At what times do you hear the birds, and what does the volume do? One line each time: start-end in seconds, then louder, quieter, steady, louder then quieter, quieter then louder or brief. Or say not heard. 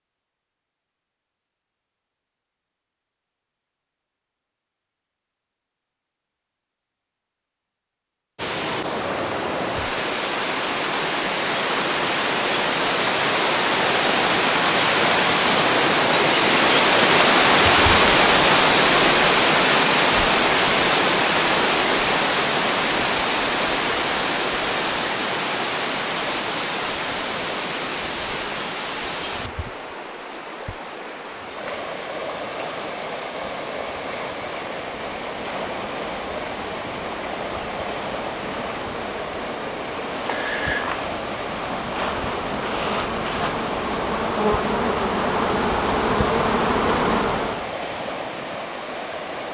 not heard.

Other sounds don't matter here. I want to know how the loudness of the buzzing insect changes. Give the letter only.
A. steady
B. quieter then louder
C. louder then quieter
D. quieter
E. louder
E.